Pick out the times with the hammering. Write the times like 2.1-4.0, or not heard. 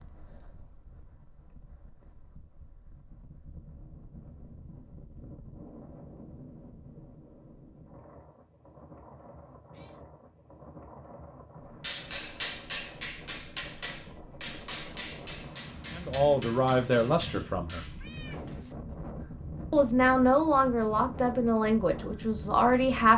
11.8-18.8.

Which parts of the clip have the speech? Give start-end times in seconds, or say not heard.
15.9-17.9, 19.7-23.1.